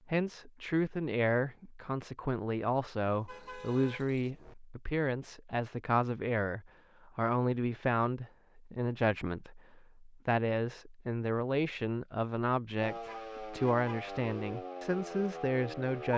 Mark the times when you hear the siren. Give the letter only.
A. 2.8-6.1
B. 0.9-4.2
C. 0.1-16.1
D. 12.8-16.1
D.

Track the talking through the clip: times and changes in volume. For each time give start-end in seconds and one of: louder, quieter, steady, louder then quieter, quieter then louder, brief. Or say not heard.
0.1-16.1 steady.